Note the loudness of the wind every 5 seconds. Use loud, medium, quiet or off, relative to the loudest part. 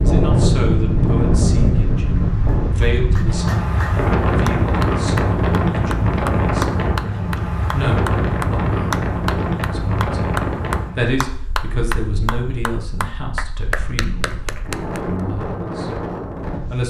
loud, loud, medium, medium.